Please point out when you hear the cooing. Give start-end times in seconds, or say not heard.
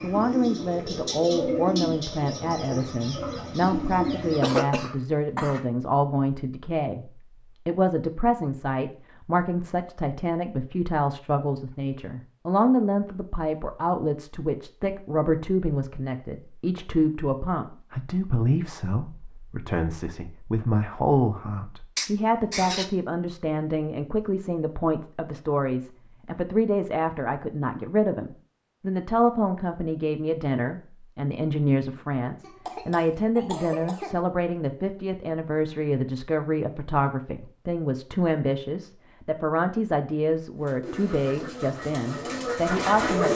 0.0-4.5, 40.6-43.3.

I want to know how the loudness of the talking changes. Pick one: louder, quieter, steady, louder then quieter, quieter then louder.
steady.